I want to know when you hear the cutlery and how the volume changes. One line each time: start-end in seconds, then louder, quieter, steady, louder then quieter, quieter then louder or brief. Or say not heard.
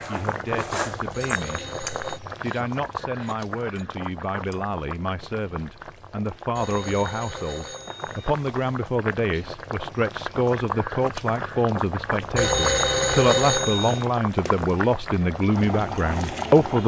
0.0-4.6 quieter.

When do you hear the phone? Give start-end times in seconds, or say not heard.
1.1-2.2, 6.5-8.3, 12.3-14.1.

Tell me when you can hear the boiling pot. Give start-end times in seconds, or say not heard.
0.0-16.8.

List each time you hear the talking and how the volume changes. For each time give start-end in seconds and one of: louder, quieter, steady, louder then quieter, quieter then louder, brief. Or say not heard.
0.1-1.6 brief
2.4-16.8 louder.